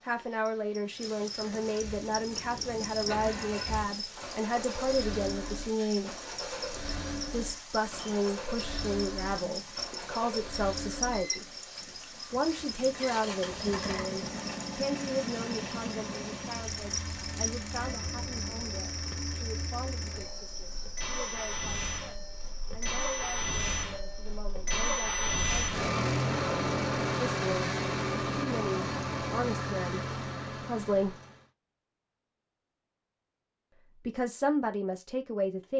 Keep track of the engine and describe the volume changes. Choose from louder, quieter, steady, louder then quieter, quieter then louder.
louder.